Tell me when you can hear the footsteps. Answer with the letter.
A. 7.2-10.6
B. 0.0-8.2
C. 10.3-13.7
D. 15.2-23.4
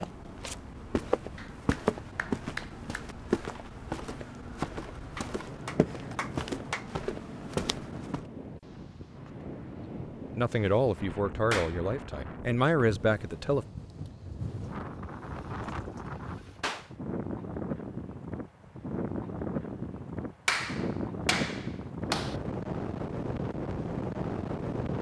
B.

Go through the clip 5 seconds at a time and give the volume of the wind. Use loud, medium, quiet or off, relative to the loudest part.
quiet, medium, medium, loud, loud.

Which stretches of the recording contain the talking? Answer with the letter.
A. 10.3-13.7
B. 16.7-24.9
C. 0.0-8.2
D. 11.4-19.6
A.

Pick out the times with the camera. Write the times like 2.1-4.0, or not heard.
not heard.